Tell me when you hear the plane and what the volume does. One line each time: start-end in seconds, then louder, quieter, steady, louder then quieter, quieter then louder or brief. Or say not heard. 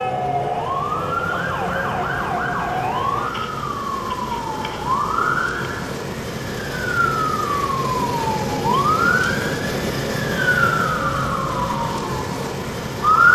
0.0-13.3 louder.